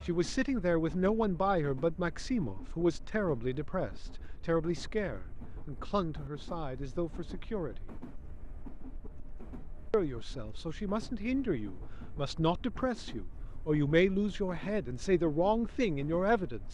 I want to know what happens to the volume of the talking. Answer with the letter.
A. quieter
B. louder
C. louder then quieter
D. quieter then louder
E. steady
D.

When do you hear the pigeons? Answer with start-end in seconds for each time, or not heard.
not heard.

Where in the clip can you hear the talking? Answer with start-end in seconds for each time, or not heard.
0.1-7.9, 9.9-16.6.